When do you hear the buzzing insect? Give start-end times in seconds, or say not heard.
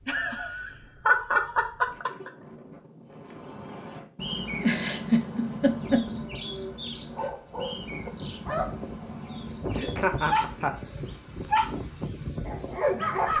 not heard.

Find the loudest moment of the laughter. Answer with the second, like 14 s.
1 s.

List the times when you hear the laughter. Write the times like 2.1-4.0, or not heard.
0.1-2.3, 4.6-6.0, 9.8-10.8.